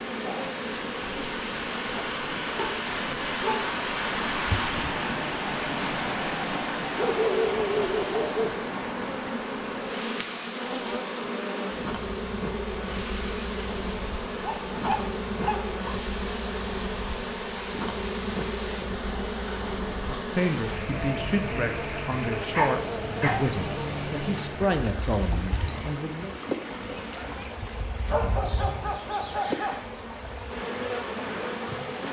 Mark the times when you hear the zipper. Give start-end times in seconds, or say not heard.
not heard.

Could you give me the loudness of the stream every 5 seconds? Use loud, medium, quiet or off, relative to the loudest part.
loud, loud, medium, medium, medium, medium, medium.